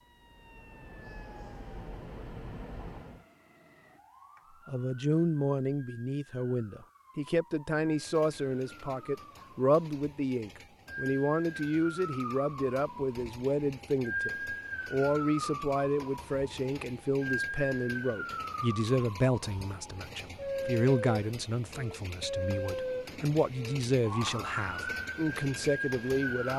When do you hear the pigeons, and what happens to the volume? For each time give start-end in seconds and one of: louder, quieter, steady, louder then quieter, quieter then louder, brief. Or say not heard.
not heard.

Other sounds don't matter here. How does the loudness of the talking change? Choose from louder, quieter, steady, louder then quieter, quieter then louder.
steady.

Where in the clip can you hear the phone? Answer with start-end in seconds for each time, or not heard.
not heard.